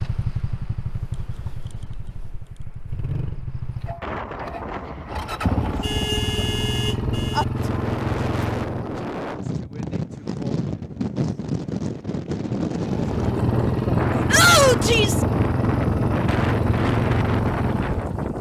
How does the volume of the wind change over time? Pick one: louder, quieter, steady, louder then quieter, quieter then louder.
louder.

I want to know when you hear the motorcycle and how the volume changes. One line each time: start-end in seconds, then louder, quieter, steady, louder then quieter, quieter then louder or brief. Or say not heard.
0.0-8.9 louder
12.8-18.3 steady.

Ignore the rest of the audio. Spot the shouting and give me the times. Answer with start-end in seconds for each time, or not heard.
14.3-15.2.